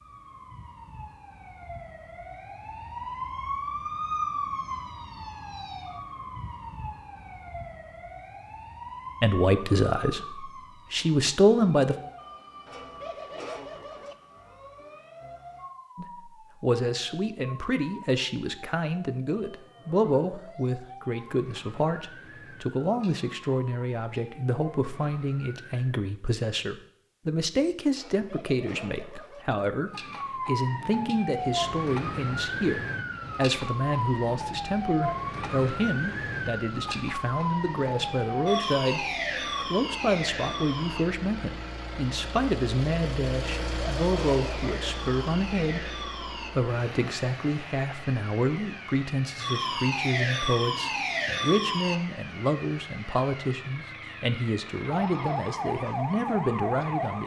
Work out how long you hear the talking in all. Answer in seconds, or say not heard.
44 s.